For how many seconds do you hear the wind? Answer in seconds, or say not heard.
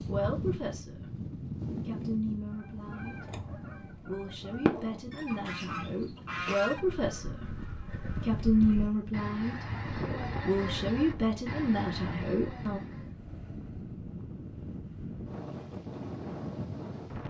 17 s.